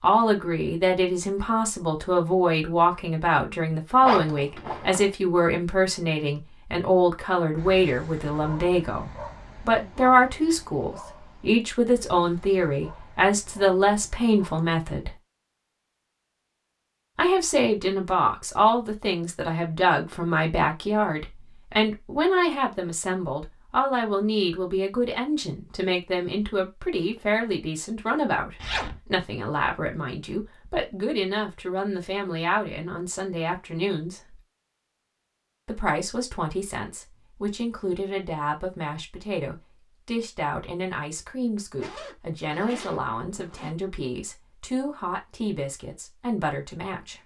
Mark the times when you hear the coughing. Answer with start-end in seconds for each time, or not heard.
not heard.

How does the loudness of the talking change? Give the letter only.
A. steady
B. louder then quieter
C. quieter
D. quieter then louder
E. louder
C.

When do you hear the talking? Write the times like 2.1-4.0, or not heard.
0.0-15.2, 17.1-34.4, 35.6-47.2.